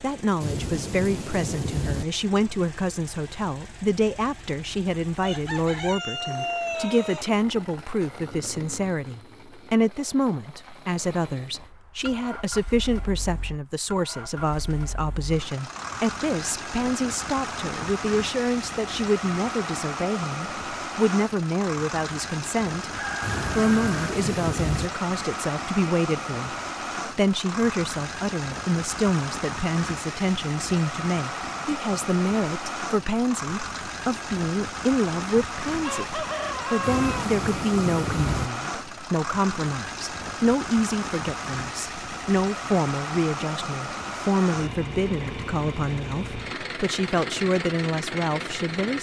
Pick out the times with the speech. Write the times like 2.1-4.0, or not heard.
0.0-22.9, 23.6-48.9.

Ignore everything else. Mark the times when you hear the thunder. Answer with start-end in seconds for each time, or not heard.
0.4-2.0, 23.2-24.9, 36.8-38.5.